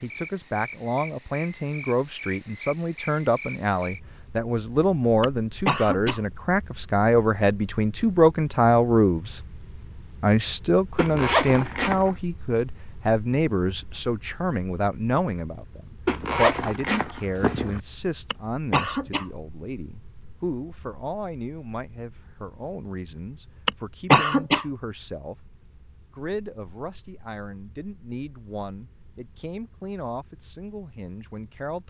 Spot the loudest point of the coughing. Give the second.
24 s.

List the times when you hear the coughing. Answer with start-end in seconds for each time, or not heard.
5.2-6.2, 18.3-19.2, 23.6-24.6.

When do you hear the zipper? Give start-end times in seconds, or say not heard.
10.9-12.2, 16.1-17.8.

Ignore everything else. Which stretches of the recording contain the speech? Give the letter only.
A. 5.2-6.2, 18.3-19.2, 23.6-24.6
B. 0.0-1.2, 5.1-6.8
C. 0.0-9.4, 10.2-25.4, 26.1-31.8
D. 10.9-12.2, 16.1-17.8
C.